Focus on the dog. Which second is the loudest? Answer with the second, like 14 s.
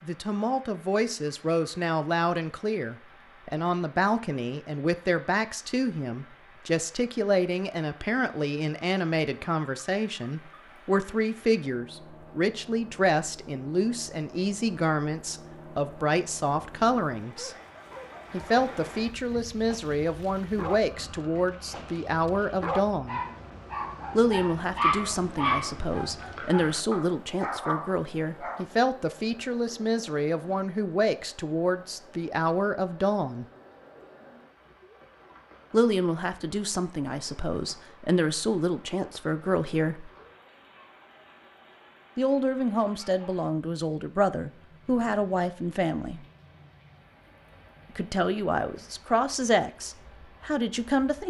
25 s.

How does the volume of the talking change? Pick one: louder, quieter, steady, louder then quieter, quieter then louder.
steady.